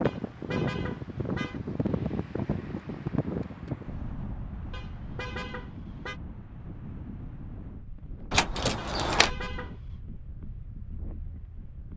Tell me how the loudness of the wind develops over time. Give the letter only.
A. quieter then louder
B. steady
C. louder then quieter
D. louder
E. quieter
E.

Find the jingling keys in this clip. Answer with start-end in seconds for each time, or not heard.
8.3-9.3.